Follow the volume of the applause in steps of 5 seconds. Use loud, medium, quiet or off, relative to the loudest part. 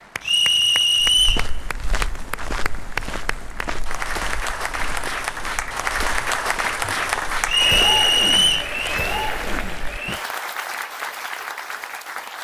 medium, loud, medium.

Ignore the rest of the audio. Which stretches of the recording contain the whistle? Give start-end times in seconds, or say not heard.
0.2-1.4, 7.5-8.7.